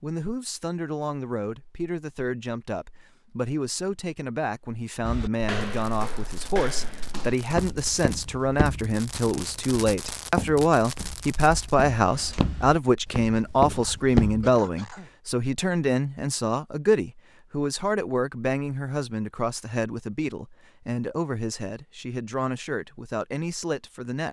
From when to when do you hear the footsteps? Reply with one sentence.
The footsteps can be heard from 5.0 to 14.5 s.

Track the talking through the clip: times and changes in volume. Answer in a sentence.
The talking can be heard from 0.0 to 24.2 s, getting louder then quieter.